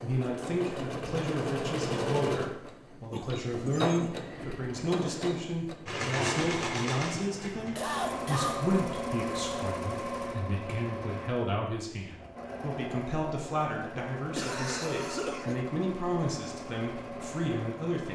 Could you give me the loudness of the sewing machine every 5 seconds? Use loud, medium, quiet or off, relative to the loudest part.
loud, loud, medium, medium.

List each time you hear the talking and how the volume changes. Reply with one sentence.
The talking can be heard from 0.0 to 18.1 s, at a steady volume.